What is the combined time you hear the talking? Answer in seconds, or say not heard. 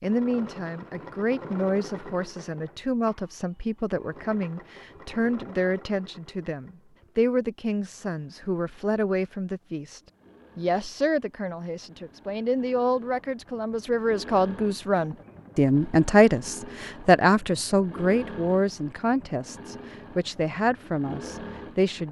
22 s.